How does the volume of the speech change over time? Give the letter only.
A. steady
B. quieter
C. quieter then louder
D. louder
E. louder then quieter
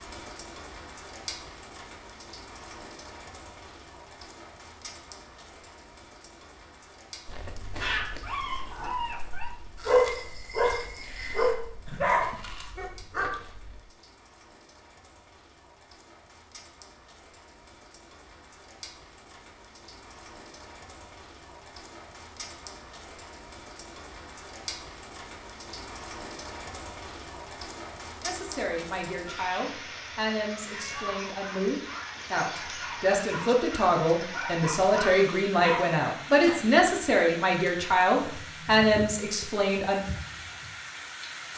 D.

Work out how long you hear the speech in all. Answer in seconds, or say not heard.
12 s.